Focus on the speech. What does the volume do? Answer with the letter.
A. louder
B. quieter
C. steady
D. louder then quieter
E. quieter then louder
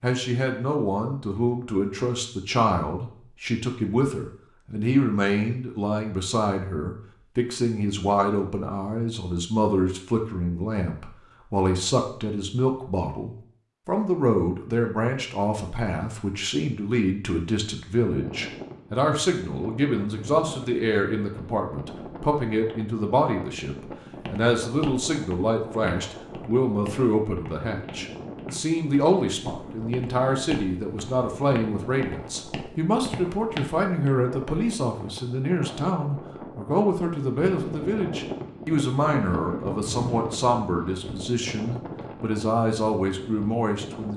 C.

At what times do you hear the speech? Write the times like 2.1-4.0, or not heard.
0.0-44.1.